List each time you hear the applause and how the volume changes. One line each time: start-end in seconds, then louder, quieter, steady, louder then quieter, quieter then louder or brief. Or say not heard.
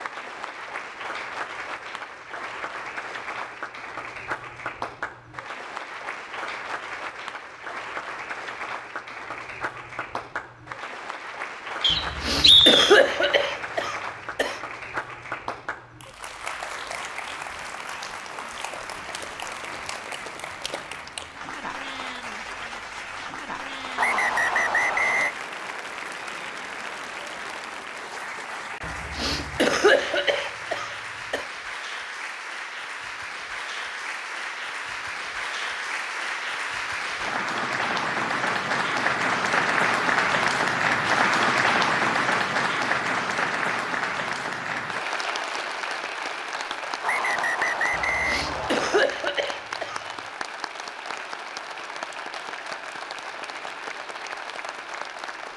0.0-55.5 louder then quieter.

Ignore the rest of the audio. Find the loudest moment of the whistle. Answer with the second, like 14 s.
13 s.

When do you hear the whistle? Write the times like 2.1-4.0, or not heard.
11.8-13.0, 23.9-25.4, 47.0-49.0.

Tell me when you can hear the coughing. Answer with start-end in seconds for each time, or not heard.
11.9-14.6, 28.8-31.4, 47.9-50.0.